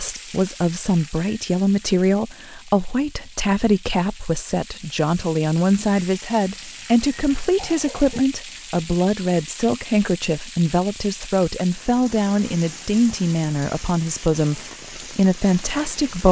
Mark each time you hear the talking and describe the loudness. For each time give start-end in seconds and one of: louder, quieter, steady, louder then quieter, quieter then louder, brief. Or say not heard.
0.0-16.2 steady.